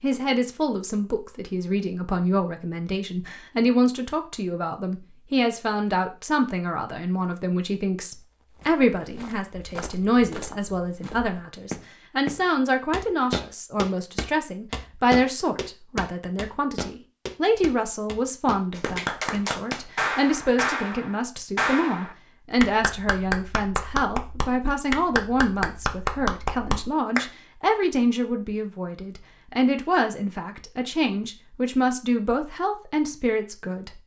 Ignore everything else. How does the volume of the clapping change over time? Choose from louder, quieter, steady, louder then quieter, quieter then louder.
steady.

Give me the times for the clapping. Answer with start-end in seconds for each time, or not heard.
18.8-27.3.